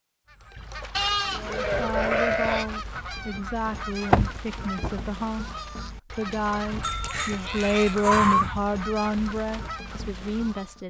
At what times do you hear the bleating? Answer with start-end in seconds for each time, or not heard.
0.9-2.6, 6.8-8.6.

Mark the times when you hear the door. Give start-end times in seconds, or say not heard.
3.6-5.0.